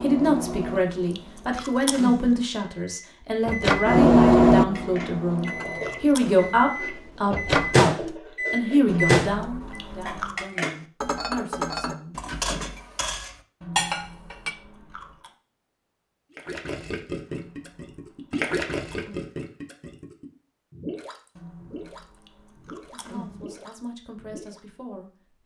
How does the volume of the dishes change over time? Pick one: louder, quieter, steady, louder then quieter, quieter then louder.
louder.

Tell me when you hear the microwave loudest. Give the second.
4 s.